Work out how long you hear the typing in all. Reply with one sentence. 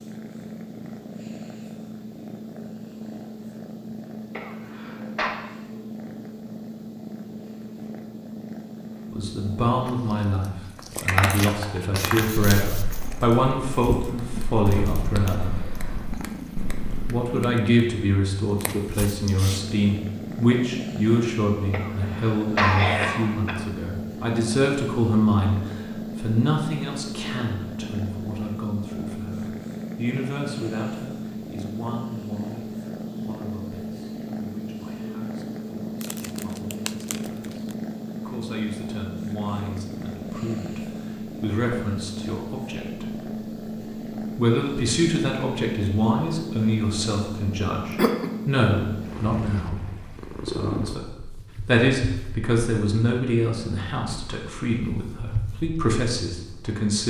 You can hear the typing for 6 seconds altogether.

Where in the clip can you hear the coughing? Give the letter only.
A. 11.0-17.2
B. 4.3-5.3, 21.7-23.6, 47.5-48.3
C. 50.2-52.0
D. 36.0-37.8
B.